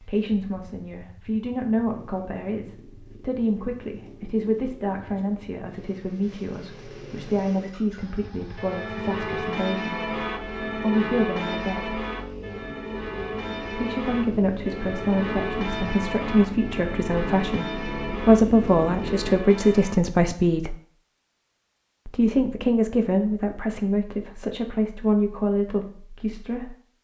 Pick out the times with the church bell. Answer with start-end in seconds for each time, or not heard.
8.6-20.0.